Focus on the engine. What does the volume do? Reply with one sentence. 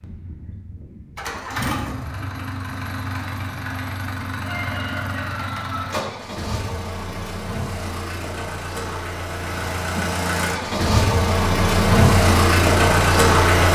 The loudness of the engine goes up.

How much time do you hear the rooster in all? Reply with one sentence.
You can hear the rooster for 2 seconds altogether.